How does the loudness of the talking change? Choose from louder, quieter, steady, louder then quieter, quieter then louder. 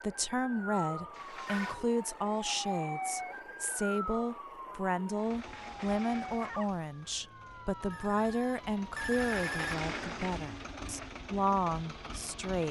steady.